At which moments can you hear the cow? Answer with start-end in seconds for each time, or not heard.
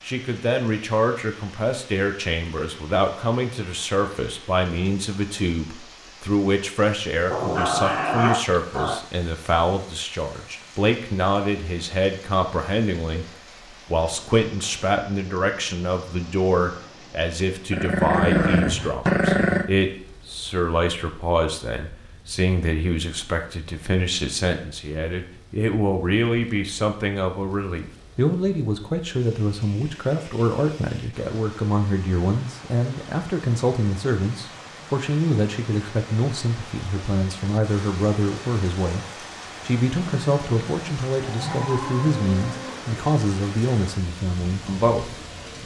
41.2-43.0.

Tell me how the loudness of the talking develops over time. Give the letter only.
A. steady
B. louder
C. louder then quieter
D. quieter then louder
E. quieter
A.